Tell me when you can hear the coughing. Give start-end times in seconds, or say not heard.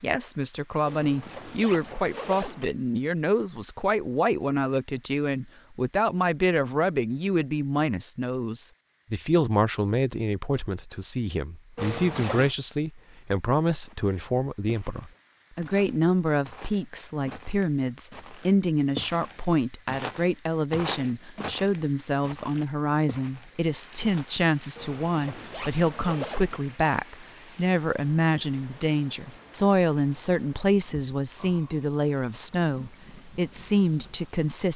not heard.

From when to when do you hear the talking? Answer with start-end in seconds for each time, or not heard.
0.0-34.7.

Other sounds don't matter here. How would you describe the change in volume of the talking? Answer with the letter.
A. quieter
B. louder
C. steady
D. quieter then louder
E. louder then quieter
C.